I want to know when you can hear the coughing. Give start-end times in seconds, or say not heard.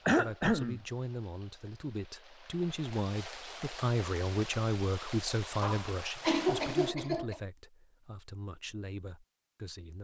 0.1-0.8, 5.6-7.4.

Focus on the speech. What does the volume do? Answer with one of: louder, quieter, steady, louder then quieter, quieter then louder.
louder then quieter.